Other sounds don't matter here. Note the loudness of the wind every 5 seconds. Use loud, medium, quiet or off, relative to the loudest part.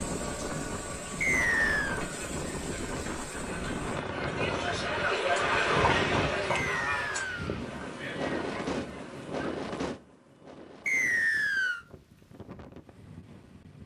loud, loud, quiet.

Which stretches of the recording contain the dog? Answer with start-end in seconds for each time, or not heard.
not heard.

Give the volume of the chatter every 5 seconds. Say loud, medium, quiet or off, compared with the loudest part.
medium, loud, off.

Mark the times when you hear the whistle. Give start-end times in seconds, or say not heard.
1.2-2.0, 6.5-7.6, 10.8-11.8.